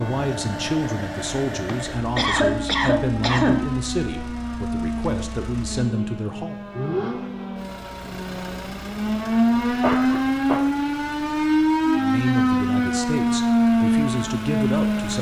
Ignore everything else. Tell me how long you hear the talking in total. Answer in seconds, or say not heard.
10 s.